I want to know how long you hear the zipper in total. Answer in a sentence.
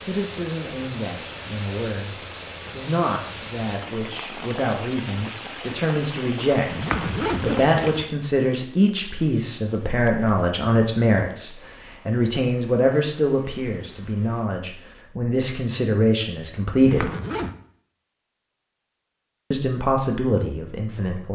You can hear the zipper for 2 seconds altogether.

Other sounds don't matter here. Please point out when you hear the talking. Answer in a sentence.
The talking can be heard from 0.1 to 17.1 s and from 19.5 to 21.3 s.